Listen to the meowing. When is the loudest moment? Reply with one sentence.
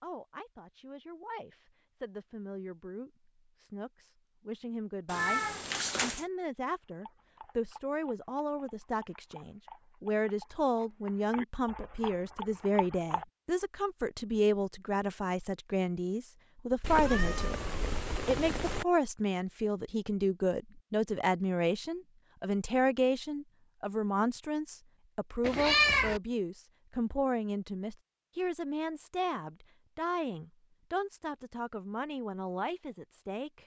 The loudest moment of the meowing is at 26 seconds.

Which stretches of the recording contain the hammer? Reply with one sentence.
The hammer can't be heard in this clip.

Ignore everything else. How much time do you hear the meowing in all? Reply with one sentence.
You can hear the meowing for 4 seconds altogether.